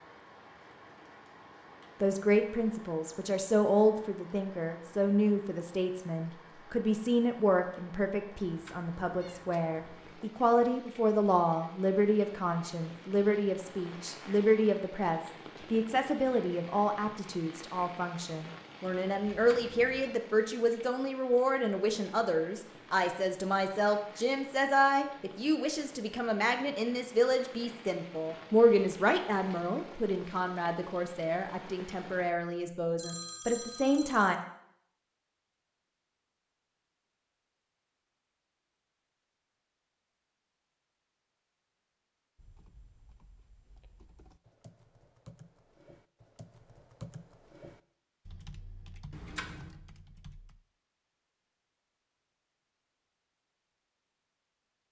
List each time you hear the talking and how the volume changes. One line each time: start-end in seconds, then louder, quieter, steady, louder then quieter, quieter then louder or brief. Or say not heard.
2.0-34.4 steady.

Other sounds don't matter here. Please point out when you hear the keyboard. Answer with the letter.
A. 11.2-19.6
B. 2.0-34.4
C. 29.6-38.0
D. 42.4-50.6
D.